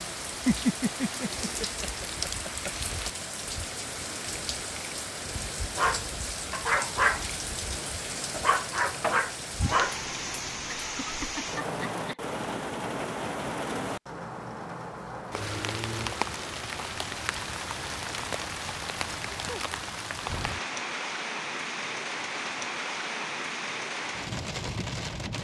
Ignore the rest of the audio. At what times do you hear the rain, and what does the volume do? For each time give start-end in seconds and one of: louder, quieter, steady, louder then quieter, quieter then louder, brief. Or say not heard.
0.0-25.3 steady.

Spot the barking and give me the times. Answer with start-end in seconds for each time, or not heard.
5.3-10.8.